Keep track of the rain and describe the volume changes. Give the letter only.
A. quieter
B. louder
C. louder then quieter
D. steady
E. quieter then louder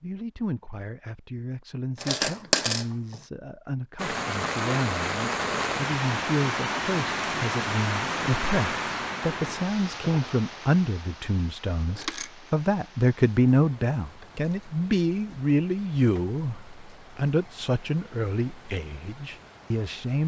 A.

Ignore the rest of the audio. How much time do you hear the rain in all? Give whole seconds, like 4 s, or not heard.
16 s.